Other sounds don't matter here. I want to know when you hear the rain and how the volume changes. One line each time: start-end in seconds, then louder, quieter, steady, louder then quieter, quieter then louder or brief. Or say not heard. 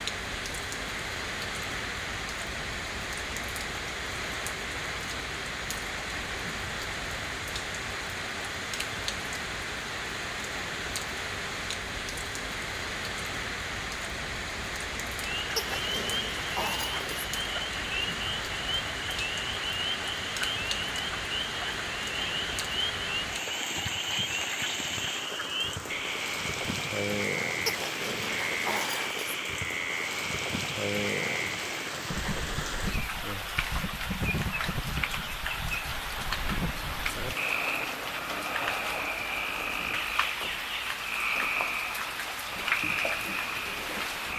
0.0-44.3 steady.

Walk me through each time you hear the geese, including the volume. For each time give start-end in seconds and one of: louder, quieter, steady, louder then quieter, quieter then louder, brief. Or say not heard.
not heard.